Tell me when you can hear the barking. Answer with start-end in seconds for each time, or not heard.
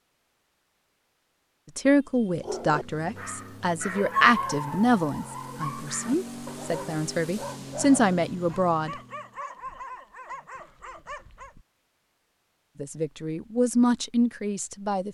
2.1-11.7.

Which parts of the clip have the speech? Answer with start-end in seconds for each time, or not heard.
1.8-8.9, 12.8-15.0.